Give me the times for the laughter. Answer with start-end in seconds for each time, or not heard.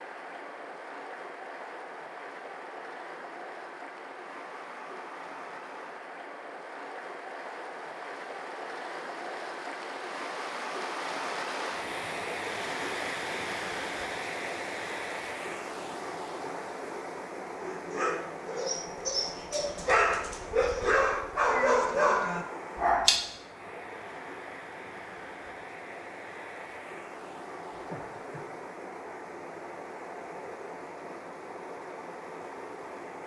27.8-28.4.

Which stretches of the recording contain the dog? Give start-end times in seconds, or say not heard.
17.6-23.2.